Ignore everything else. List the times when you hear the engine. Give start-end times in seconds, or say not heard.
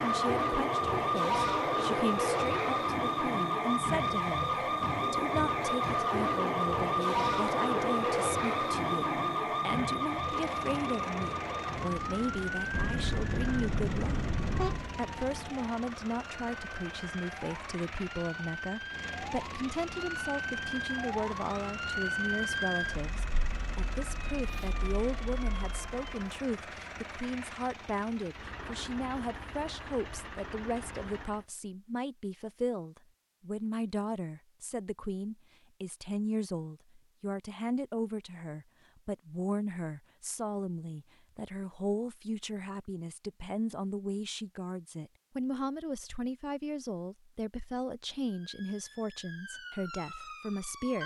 10.1-31.4.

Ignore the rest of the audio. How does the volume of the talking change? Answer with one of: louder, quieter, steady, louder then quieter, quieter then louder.
steady.